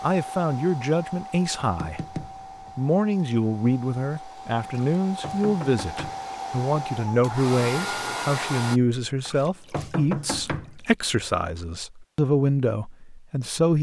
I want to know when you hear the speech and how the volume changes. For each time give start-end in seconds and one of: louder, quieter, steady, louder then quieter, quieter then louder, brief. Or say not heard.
0.0-13.7 steady.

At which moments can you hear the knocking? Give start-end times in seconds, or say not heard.
1.6-2.8, 4.7-6.4, 9.2-10.9.